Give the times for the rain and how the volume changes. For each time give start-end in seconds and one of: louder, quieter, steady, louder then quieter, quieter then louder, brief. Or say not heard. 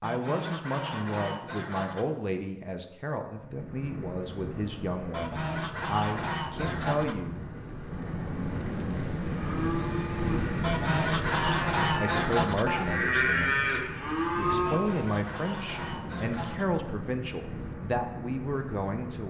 3.4-19.2 louder then quieter.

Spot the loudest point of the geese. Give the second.
12 s.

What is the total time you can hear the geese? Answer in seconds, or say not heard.
8 s.